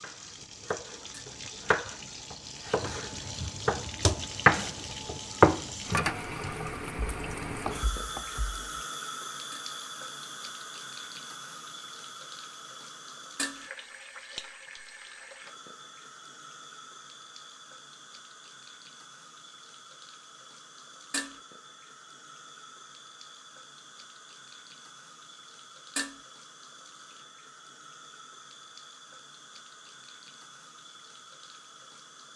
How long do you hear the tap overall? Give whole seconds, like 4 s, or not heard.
32 s.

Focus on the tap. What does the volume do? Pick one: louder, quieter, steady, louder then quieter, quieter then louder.
quieter.